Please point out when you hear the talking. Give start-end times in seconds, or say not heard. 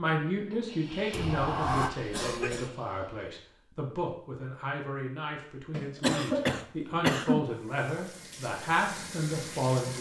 0.0-9.9.